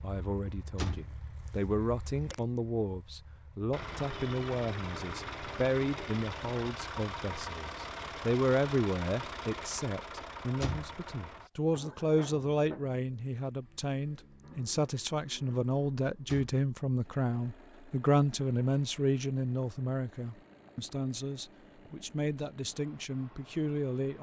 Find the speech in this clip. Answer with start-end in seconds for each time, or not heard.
0.0-24.1.